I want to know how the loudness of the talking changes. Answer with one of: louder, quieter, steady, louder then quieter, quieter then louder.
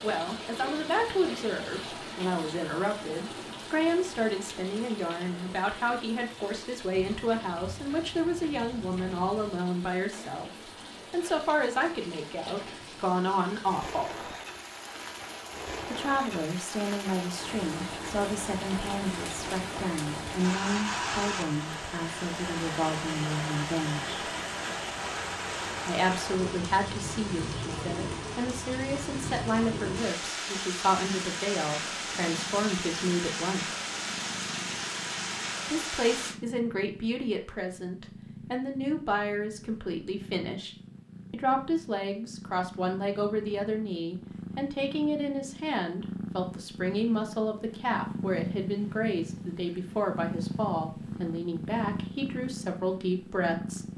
steady.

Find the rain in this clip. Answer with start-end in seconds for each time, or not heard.
0.0-36.4.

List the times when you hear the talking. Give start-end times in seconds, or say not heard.
0.0-14.1, 15.8-24.2, 25.9-33.7, 35.6-40.7, 41.3-53.9.